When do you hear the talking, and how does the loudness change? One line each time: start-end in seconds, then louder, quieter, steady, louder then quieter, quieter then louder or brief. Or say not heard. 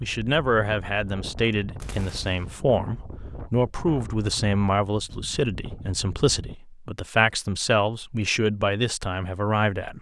0.0-9.9 steady.